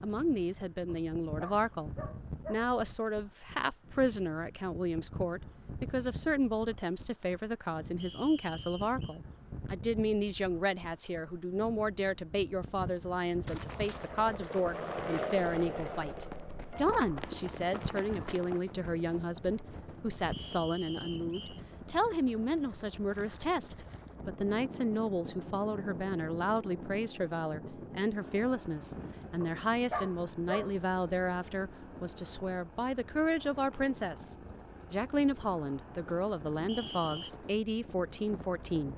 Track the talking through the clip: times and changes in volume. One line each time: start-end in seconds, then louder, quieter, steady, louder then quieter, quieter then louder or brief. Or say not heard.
0.0-38.9 steady.